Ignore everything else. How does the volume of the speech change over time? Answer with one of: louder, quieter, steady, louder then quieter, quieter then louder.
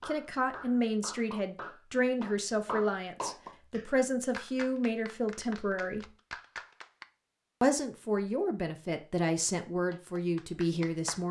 steady.